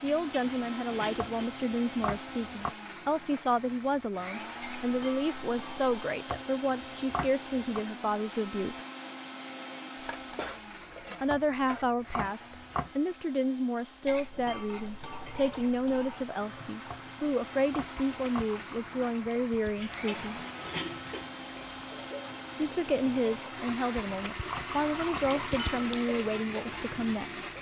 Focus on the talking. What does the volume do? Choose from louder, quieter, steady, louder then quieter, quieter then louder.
steady.